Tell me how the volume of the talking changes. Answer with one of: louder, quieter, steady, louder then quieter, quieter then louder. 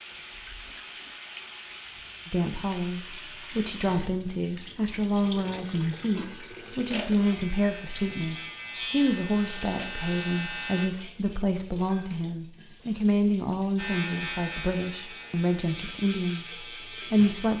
steady.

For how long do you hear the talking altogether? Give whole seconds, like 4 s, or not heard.
15 s.